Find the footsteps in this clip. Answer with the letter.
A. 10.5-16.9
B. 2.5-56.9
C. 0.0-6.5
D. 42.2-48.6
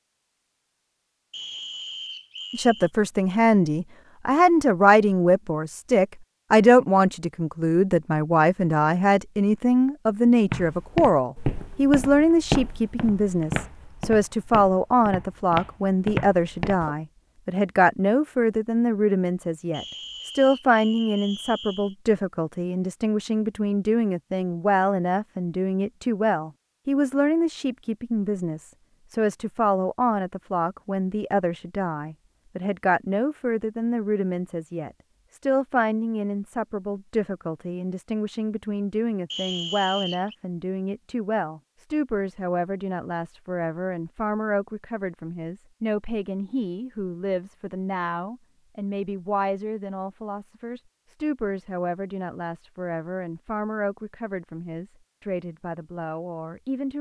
A.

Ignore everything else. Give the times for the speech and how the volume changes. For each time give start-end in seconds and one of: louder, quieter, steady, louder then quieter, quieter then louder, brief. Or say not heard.
2.5-56.9 quieter.